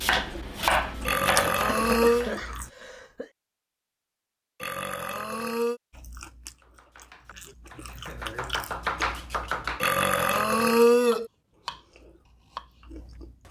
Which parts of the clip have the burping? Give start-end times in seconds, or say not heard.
1.1-2.3, 4.6-5.8, 9.8-11.3.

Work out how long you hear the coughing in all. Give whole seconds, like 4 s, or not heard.
2 s.